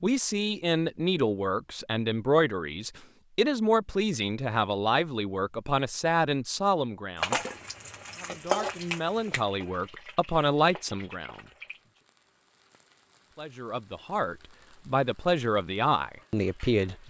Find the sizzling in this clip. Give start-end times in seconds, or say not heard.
7.2-17.0.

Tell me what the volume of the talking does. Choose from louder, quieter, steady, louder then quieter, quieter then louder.
steady.